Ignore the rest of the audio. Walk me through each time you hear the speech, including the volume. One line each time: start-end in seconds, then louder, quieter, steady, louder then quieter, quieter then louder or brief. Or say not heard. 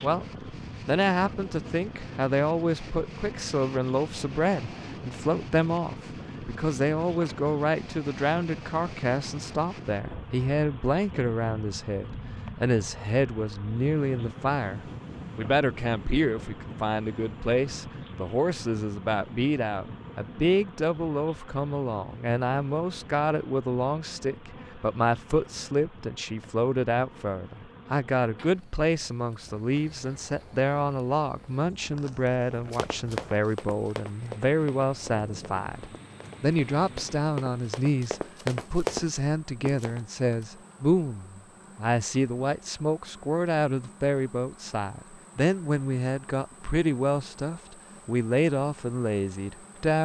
0.0-50.0 steady.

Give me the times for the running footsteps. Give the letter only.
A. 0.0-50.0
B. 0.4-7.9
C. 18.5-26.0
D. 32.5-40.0
D.